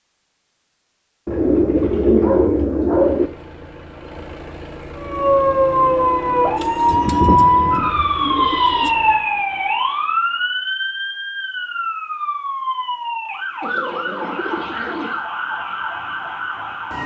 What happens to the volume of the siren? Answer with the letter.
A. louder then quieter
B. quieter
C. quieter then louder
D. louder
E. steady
B.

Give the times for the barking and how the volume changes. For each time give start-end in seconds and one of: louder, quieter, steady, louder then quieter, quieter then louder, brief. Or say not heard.
not heard.